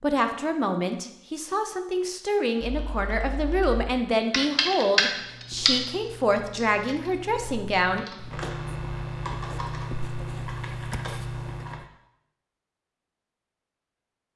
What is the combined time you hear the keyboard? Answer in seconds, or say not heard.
8 s.